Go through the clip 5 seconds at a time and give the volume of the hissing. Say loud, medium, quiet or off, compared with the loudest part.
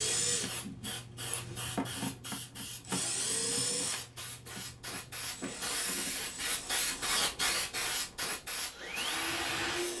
medium, loud.